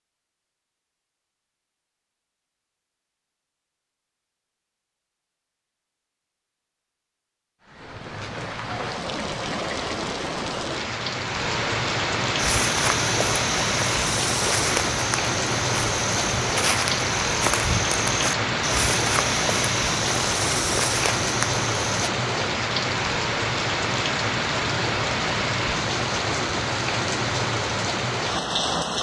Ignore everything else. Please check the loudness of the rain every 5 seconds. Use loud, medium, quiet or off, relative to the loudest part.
off, medium, loud, loud, loud, loud.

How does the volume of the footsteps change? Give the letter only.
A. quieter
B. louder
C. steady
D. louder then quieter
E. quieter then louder
C.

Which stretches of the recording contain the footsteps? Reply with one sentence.
You can hear the footsteps from 12.3 to 22.1 s.